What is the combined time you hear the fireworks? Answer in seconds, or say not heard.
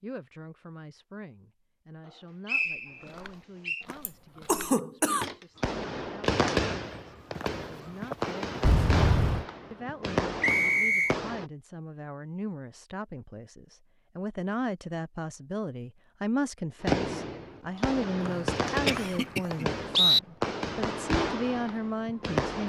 12 s.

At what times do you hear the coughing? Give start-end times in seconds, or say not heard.
4.0-5.2, 8.6-9.4, 18.2-19.8.